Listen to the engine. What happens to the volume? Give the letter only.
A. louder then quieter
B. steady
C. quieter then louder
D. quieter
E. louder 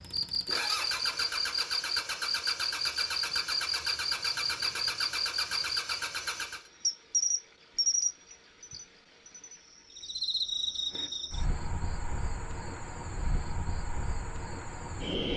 B.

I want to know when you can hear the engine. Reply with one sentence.
The engine can be heard from 0.0 to 6.7 s.